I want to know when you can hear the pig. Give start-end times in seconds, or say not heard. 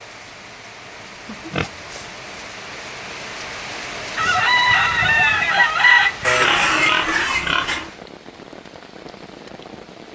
1.2-2.1, 6.2-7.9.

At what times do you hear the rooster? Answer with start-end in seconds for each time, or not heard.
4.2-7.0.